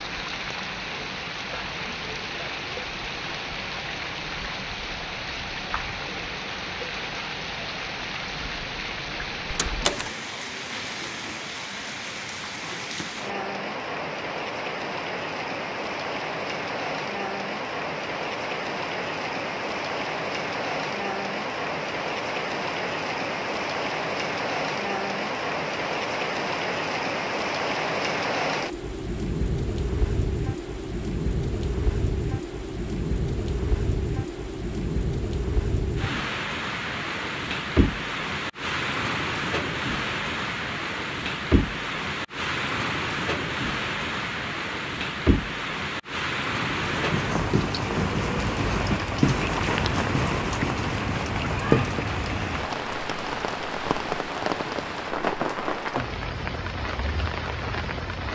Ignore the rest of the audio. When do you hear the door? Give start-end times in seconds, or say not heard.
9.5-10.2.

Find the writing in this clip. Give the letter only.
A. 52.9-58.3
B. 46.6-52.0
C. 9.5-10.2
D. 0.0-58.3
B.